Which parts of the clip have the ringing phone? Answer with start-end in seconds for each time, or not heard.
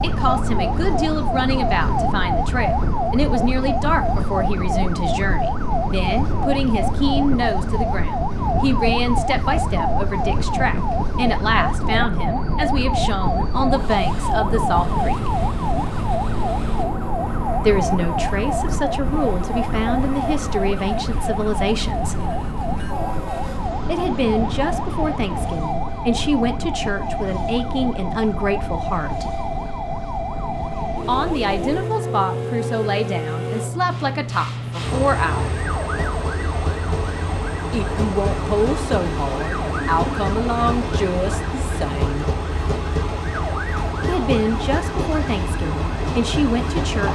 not heard.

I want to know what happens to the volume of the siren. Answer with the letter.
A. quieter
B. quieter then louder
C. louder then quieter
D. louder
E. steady
A.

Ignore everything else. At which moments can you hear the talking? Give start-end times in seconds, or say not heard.
0.0-15.3, 17.6-22.3, 23.9-29.2, 31.1-35.5, 37.7-42.3, 44.0-47.1.